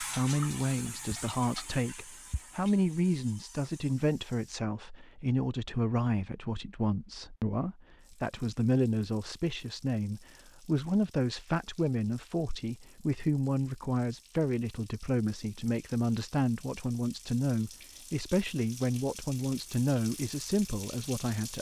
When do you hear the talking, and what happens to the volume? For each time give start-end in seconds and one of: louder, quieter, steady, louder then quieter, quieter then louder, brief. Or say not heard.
0.0-21.5 steady.